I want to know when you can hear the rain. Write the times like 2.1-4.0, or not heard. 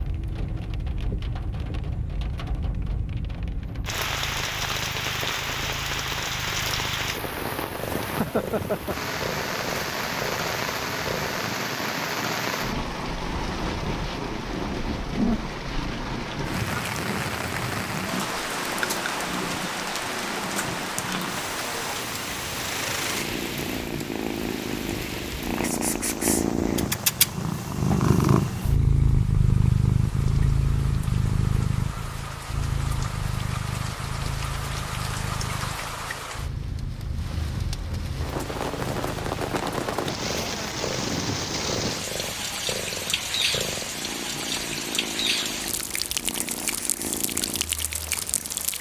0.0-48.7.